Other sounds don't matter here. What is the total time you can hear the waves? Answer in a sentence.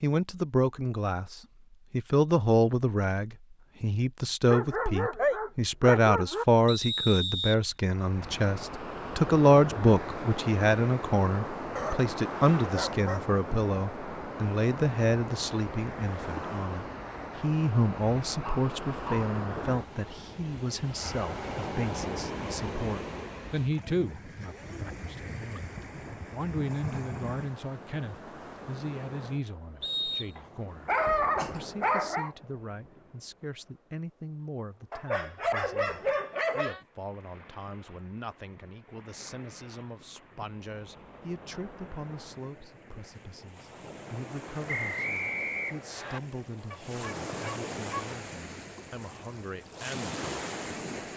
The waves can be heard for 43 seconds in total.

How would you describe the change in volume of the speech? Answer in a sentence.
The volume of the speech goes down.